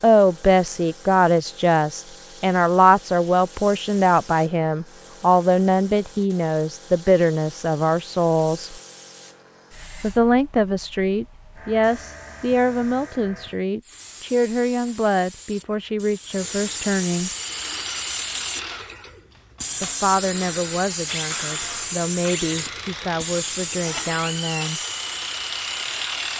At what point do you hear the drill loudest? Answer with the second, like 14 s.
26 s.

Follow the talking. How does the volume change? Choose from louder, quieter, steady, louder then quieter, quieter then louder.
quieter.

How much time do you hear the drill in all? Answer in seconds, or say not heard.
9 s.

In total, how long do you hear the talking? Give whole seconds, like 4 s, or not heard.
21 s.